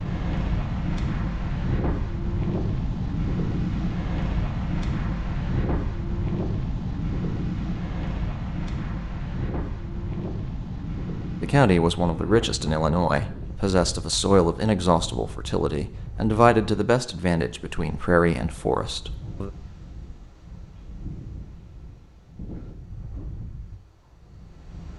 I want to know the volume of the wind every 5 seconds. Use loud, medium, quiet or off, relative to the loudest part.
loud, loud, medium, quiet, quiet.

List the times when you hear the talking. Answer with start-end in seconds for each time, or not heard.
11.4-19.5.